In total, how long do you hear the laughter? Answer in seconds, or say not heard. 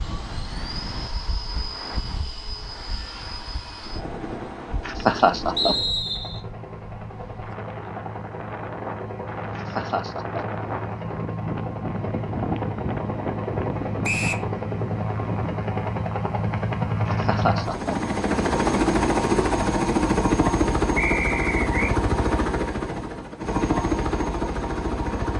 3 s.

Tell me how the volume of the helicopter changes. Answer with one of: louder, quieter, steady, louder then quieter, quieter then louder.
louder.